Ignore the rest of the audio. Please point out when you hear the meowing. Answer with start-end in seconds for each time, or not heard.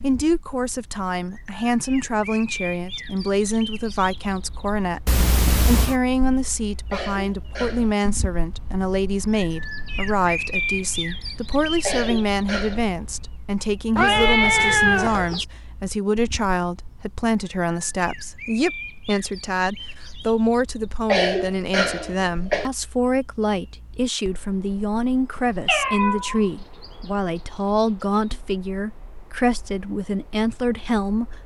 5.0-6.0, 13.9-15.4, 25.6-26.4.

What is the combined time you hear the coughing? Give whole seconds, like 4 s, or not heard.
4 s.